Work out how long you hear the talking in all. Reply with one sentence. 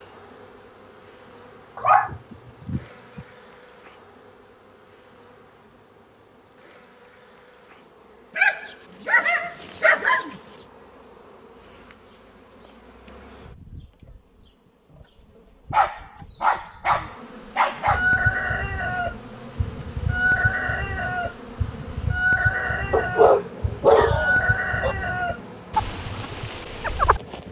The talking can't be heard in this clip.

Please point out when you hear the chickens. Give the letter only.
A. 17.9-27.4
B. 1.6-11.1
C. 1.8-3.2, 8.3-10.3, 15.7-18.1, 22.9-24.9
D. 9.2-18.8
A.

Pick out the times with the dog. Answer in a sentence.
The dog can be heard from 1.8 to 3.2 s, from 8.3 to 10.3 s, from 15.7 to 18.1 s and from 22.9 to 24.9 s.